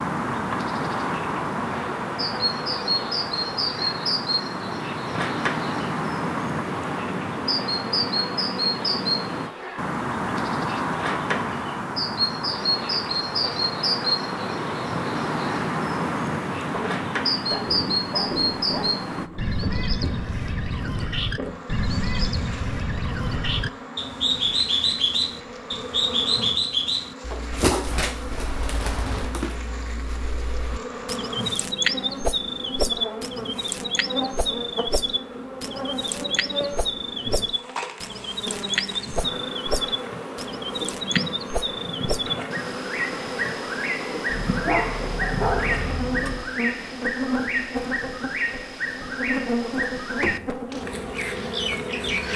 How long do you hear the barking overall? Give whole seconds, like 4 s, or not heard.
4 s.